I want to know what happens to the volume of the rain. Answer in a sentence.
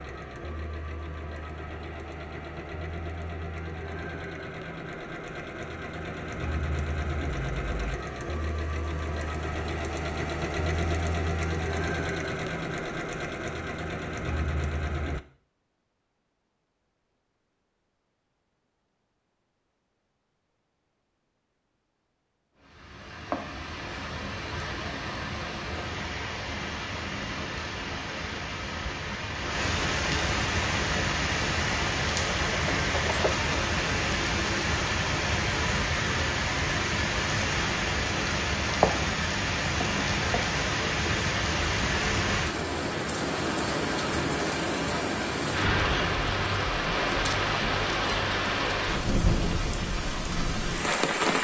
The volume of the rain goes up.